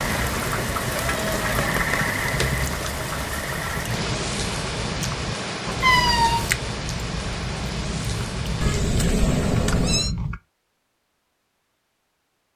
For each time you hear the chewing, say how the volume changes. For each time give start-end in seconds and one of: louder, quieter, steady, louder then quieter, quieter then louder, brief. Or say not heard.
3.8-10.4 louder.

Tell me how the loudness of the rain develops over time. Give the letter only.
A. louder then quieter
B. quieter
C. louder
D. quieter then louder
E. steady
B.